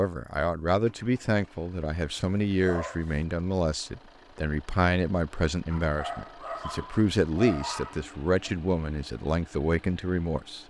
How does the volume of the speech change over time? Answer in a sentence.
The loudness of the speech stays about the same.